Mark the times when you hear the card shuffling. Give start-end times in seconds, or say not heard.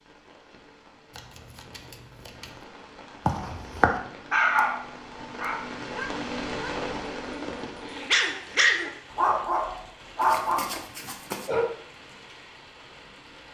1.1-2.6, 10.2-11.5.